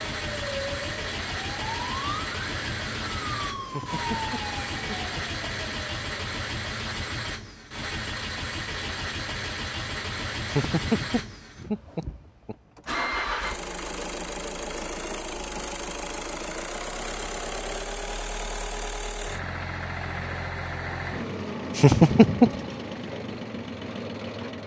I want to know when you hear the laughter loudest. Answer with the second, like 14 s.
22 s.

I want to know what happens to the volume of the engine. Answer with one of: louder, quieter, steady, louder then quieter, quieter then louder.
steady.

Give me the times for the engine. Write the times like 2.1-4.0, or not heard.
0.0-24.6.